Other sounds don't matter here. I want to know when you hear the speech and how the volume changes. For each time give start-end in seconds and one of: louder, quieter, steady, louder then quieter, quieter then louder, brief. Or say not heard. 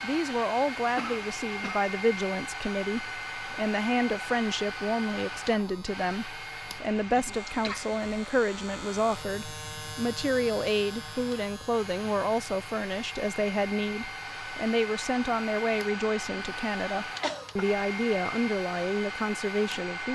0.0-20.0 steady.